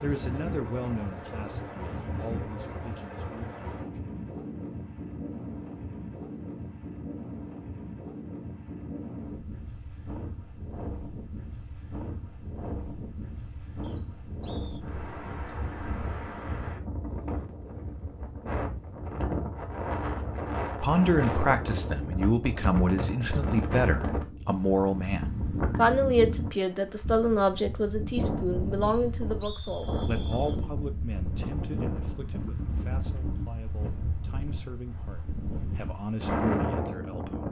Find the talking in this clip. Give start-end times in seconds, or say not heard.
0.0-4.0, 20.8-37.4.